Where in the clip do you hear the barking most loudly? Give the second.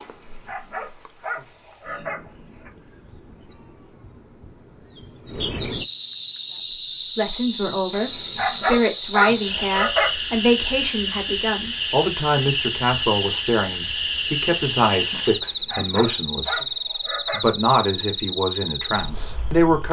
9 s.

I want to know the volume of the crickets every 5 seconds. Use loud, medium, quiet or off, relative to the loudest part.
quiet, loud, loud, loud.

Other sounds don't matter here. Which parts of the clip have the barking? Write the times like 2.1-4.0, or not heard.
0.0-2.7, 7.9-10.1, 15.2-17.5.